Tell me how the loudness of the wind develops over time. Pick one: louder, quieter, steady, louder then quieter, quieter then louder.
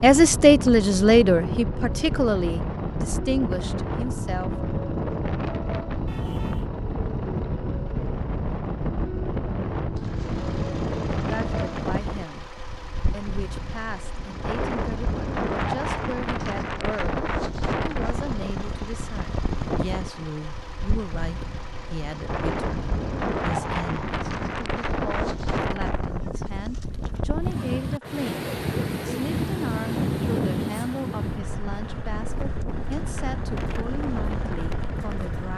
steady.